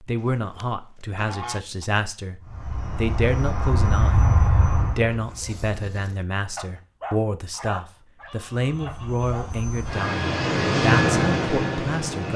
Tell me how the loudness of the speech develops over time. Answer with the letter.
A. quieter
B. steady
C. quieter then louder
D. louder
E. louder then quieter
B.